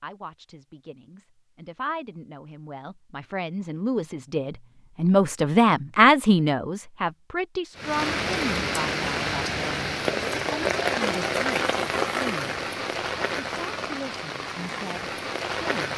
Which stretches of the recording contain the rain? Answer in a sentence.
You can hear the rain from 7.8 to 15.9 s.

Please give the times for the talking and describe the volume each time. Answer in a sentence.
The talking can be heard from 0.0 to 12.6 s, getting louder then quieter; and briefly from 13.4 to 15.9 s.